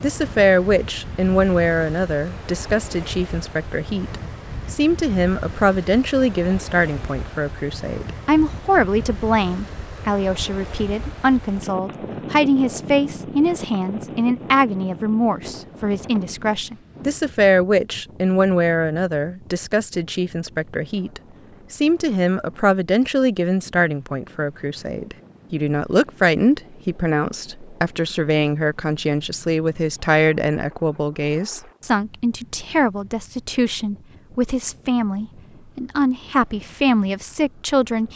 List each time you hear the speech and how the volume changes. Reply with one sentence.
You can hear the speech from 0.0 to 38.1 s, at a steady volume.